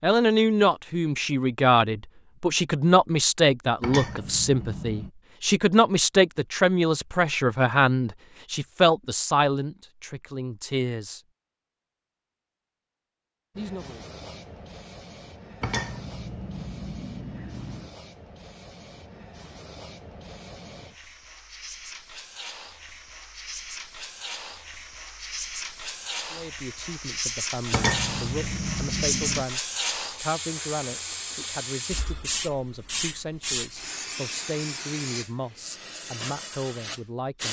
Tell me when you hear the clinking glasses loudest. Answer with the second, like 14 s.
28 s.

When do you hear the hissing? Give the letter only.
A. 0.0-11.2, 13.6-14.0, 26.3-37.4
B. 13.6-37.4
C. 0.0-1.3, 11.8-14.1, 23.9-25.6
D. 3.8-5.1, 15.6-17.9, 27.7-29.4
B.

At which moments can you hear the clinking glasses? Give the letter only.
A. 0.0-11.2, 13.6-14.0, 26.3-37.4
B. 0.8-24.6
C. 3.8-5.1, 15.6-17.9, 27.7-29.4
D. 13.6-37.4
C.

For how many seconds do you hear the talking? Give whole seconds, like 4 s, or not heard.
23 s.